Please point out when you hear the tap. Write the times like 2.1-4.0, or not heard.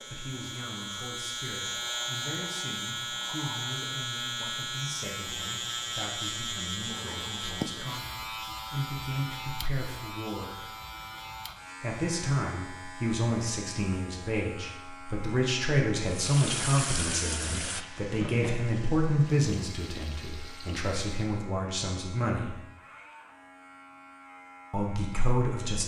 16.1-21.5.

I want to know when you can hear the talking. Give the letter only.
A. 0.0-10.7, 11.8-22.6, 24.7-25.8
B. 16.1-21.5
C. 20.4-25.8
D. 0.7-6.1
A.